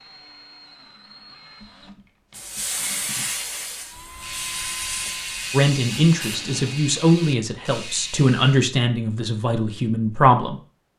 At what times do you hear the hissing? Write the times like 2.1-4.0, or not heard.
2.3-6.8.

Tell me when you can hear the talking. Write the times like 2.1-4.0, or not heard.
5.5-10.6.